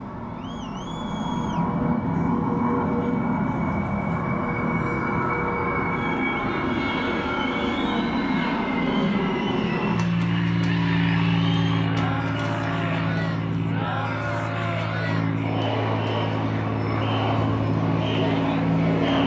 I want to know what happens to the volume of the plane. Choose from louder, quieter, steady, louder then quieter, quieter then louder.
steady.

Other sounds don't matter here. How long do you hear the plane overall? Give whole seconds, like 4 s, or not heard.
19 s.